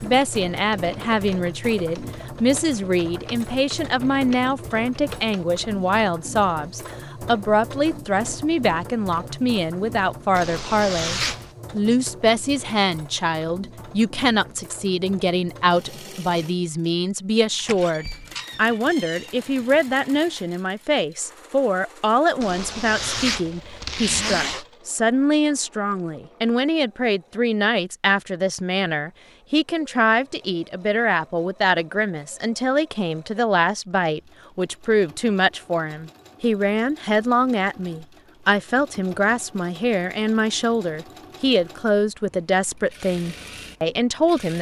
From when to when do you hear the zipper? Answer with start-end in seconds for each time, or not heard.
10.3-11.5, 22.4-24.6.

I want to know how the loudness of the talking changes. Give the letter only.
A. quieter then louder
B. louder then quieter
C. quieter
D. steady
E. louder
D.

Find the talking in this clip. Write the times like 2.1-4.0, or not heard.
0.0-44.5.